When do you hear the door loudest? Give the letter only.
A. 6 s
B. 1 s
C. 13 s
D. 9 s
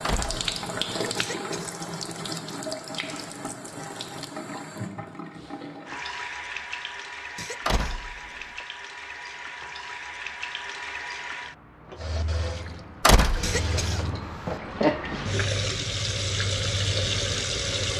C.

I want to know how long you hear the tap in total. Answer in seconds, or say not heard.
18 s.